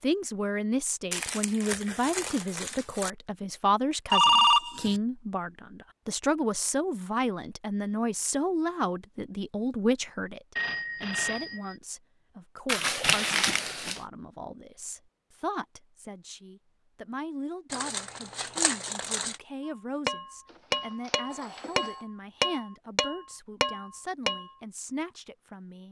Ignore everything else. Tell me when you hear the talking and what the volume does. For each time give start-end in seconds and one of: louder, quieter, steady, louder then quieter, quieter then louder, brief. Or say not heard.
0.0-25.8 quieter.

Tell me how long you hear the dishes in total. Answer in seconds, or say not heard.
5 s.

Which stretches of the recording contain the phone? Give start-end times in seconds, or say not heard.
4.1-5.0, 10.6-11.8, 20.4-22.1.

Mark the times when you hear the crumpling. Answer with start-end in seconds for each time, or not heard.
1.1-3.1, 12.7-14.0, 17.7-19.4.